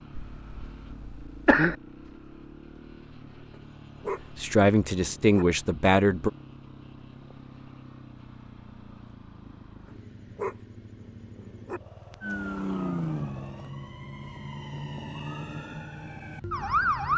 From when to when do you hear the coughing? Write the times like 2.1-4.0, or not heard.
0.1-1.8.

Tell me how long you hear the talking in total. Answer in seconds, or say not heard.
2 s.